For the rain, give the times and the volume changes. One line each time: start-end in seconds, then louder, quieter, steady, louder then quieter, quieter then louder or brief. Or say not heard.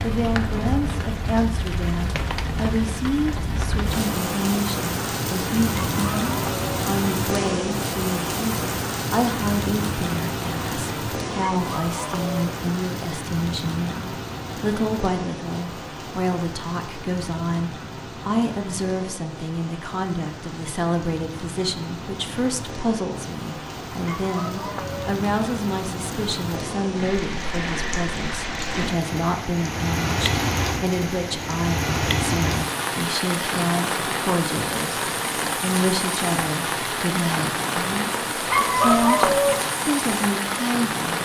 0.0-41.2 quieter then louder.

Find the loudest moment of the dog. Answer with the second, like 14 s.
39 s.